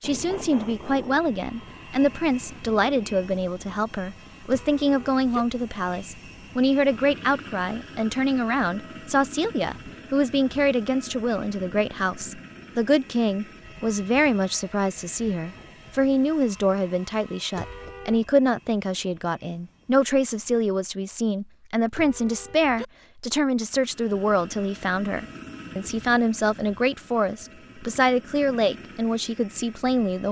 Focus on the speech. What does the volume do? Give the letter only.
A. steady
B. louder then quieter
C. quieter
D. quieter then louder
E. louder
A.